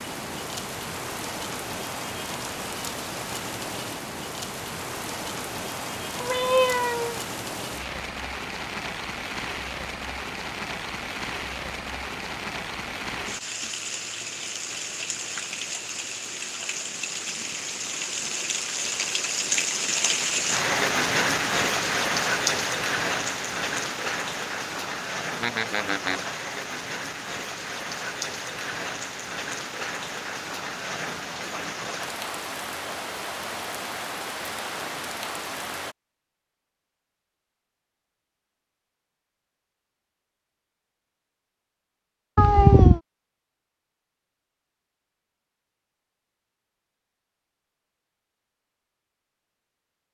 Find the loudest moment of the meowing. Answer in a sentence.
The loudest moment of the meowing is at 43 seconds.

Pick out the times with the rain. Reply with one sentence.
You can hear the rain from 0.0 to 36.0 s.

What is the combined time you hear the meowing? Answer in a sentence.
You can hear the meowing for 3 seconds altogether.